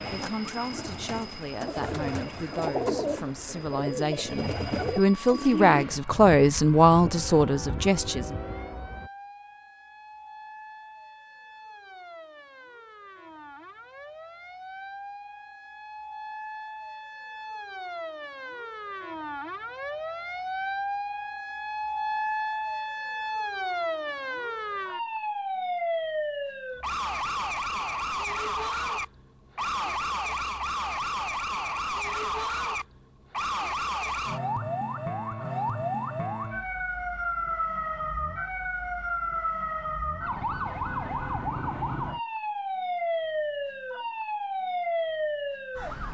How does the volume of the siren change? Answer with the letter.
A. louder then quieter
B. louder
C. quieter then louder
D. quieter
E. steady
B.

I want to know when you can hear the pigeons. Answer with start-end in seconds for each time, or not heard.
0.0-5.8.